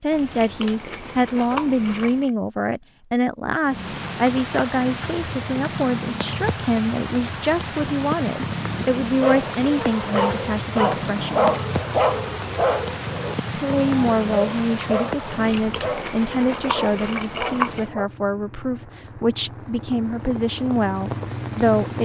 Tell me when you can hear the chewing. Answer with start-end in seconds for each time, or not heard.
0.1-2.3, 15.2-17.9.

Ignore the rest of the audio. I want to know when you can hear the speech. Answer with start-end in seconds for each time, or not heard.
0.0-11.4, 13.6-22.0.